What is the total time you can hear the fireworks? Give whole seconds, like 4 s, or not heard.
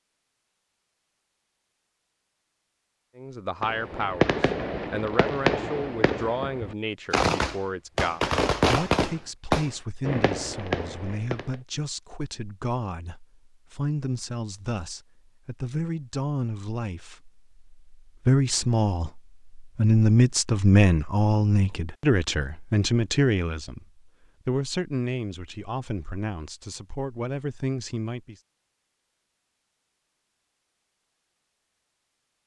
8 s.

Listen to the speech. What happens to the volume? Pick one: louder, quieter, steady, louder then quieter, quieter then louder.
louder then quieter.